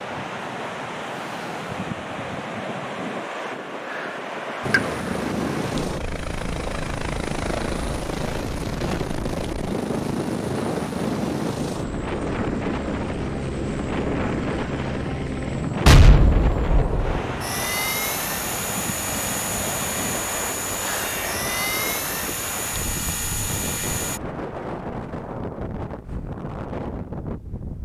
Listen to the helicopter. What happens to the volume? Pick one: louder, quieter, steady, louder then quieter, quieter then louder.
steady.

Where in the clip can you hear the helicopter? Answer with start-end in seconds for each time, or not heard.
4.6-24.2.